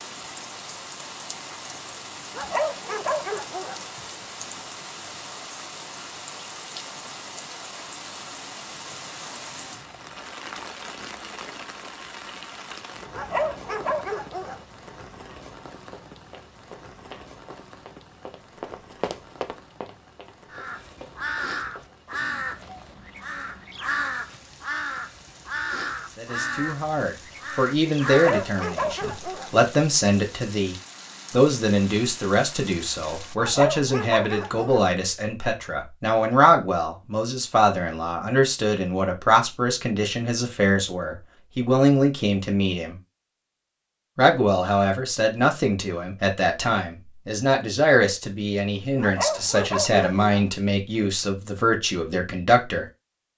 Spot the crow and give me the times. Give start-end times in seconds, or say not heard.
20.5-28.4.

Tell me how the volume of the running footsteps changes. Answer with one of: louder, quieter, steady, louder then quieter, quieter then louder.
louder then quieter.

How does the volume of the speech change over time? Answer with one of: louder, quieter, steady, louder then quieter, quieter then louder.
steady.